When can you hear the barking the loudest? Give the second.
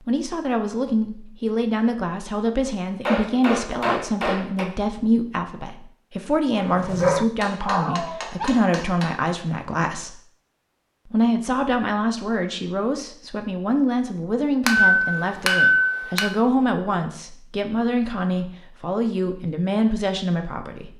7 s.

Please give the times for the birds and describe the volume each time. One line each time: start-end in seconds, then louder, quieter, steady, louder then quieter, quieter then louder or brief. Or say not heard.
not heard.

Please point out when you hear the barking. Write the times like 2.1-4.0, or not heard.
6.5-8.5.